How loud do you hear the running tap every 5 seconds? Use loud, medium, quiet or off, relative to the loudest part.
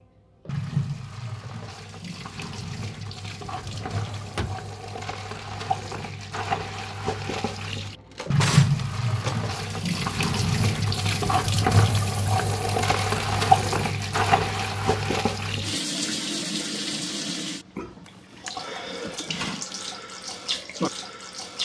medium, loud, loud, medium, medium.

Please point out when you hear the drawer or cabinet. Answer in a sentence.
The drawer or cabinet can be heard from 3.5 to 4.7 s, from 7.8 to 9.4 s and from 18.1 to 19.6 s.